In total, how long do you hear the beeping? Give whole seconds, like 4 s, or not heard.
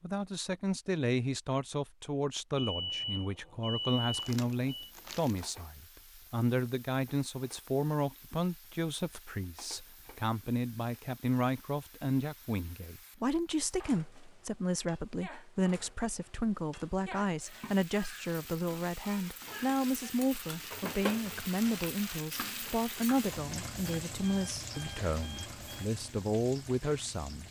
4 s.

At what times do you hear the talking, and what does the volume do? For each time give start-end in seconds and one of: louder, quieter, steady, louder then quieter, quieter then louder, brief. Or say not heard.
0.0-27.4 steady.